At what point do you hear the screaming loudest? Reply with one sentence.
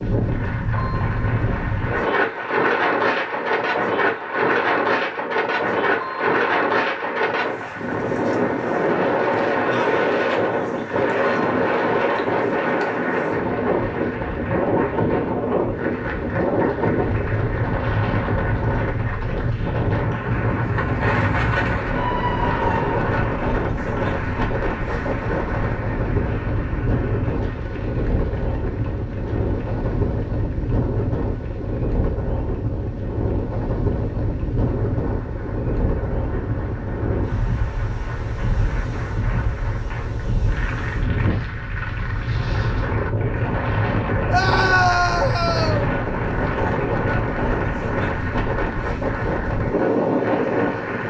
The loudest moment of the screaming is at 45 seconds.